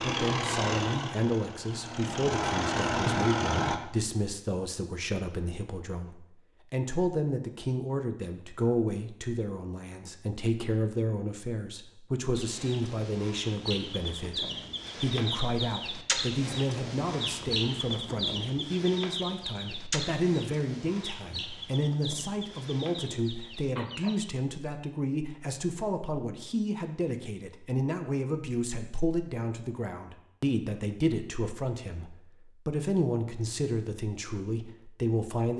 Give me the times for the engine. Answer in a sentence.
The engine can be heard from 0.0 to 3.8 s.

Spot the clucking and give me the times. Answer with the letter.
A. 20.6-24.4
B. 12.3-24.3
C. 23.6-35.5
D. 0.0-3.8
B.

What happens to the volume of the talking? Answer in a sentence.
The volume of the talking stays about the same.